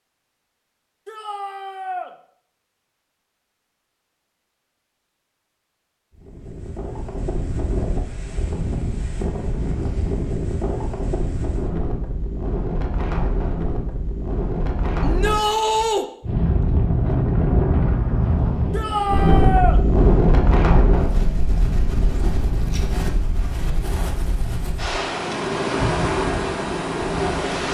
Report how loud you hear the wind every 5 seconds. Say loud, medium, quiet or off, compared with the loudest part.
off, medium, medium, loud, loud, loud.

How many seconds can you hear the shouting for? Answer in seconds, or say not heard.
3 s.